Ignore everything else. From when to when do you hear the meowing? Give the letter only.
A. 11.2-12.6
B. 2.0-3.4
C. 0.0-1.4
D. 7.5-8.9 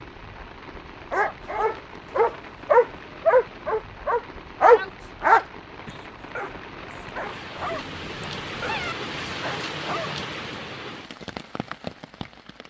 D.